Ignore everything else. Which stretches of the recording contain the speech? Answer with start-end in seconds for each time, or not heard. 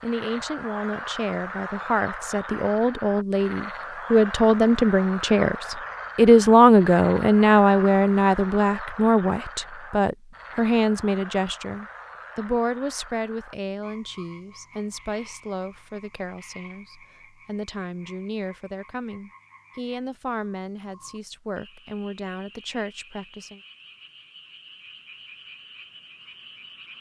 0.0-23.6.